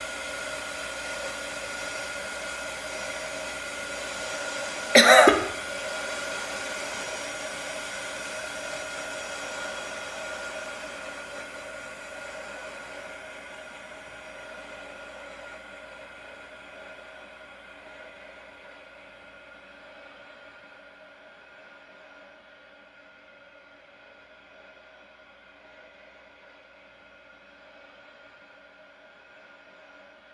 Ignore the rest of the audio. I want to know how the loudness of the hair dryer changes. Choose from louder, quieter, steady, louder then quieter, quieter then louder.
quieter.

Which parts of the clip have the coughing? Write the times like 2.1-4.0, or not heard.
5.0-5.4.